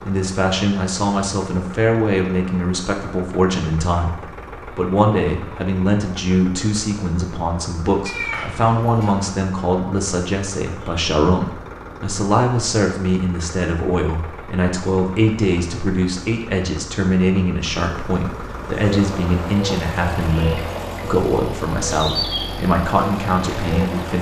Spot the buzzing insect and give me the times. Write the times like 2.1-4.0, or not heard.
18.4-24.1.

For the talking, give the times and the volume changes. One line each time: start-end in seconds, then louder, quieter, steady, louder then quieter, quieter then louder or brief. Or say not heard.
0.0-24.1 steady.